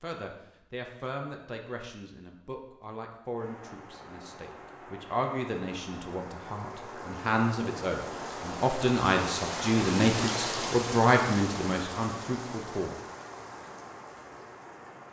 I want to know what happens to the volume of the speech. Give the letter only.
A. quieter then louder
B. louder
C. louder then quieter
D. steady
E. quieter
B.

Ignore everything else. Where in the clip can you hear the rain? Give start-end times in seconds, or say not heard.
3.3-15.0.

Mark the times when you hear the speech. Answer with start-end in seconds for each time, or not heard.
0.0-12.9.